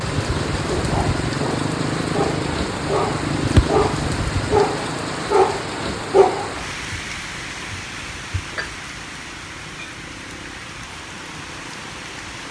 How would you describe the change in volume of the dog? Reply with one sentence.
The volume of the dog goes up.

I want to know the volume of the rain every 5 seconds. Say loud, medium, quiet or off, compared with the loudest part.
loud, loud, medium.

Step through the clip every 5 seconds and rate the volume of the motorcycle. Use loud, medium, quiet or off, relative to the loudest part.
loud, quiet, quiet.